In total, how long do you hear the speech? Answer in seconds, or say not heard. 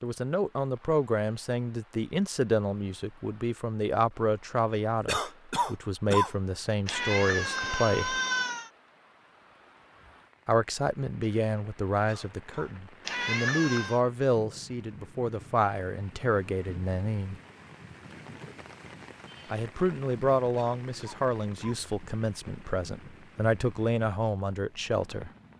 21 s.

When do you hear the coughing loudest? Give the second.
6 s.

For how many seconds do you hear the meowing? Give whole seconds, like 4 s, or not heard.
3 s.